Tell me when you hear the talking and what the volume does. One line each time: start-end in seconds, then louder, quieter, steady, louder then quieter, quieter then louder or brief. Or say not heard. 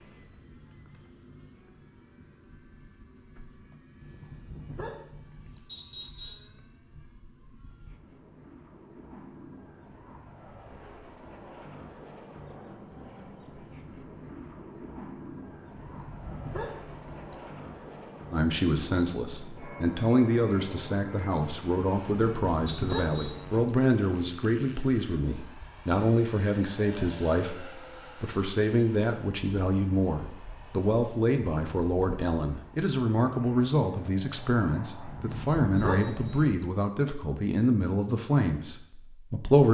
18.3-39.6 steady.